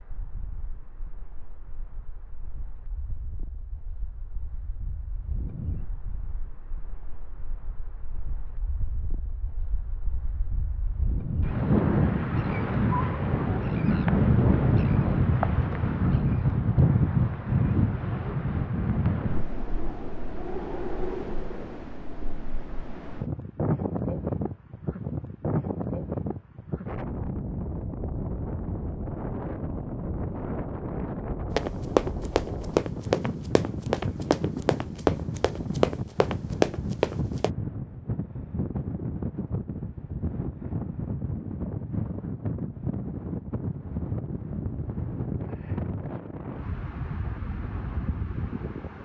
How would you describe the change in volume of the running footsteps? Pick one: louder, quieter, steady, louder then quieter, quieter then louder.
quieter then louder.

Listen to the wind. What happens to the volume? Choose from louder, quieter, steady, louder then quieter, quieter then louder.
louder then quieter.